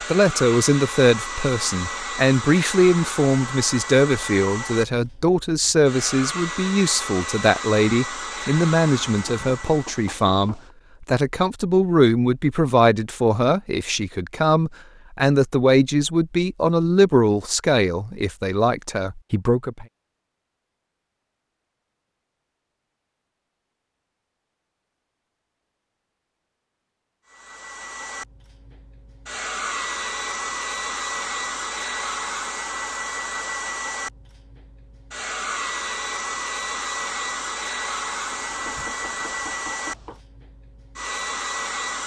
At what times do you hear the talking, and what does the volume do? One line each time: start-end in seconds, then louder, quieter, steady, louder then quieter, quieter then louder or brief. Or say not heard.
0.1-19.9 steady.